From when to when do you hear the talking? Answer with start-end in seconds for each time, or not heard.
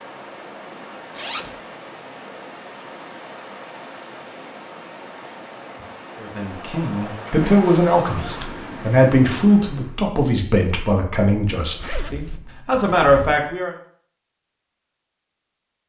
6.2-13.8.